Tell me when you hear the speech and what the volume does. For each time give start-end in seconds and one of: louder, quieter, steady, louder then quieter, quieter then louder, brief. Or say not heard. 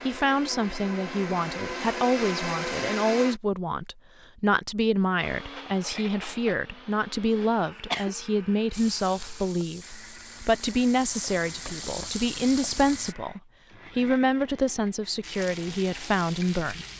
0.1-16.9 steady.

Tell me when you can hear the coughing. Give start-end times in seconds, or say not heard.
7.3-8.1.